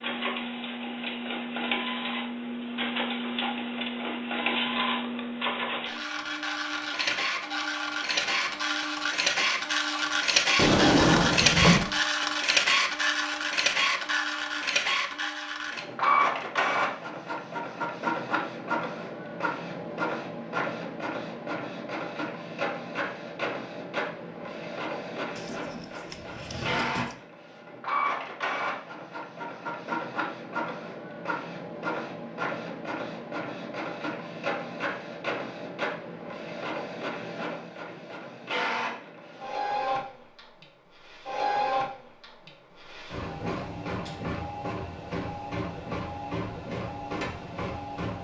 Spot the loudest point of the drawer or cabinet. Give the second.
11 s.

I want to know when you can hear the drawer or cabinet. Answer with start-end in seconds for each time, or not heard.
10.6-11.9, 25.4-27.1.